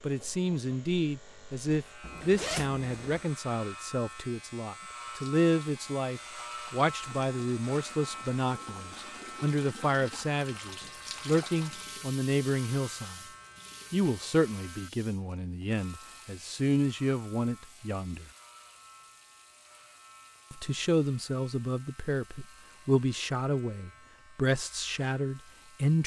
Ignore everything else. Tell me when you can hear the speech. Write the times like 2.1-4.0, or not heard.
0.0-13.2, 13.9-18.2, 20.5-26.0.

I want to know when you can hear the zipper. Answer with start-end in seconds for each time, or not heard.
2.0-3.2.